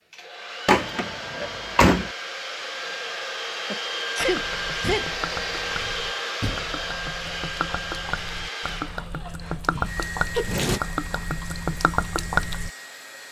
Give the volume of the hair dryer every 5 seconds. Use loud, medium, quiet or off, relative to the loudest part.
loud, loud, medium.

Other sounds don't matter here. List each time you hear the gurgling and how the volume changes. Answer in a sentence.
The gurgling can be heard from 4.2 to 12.7 s, getting louder.